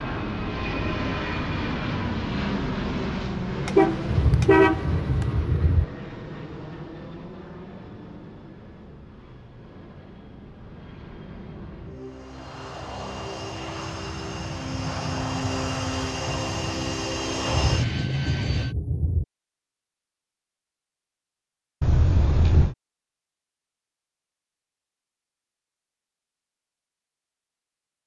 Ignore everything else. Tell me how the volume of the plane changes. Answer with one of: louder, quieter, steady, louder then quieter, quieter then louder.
quieter then louder.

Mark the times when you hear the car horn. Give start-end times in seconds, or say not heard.
3.6-5.2, 21.8-22.8.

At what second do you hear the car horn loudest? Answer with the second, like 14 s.
5 s.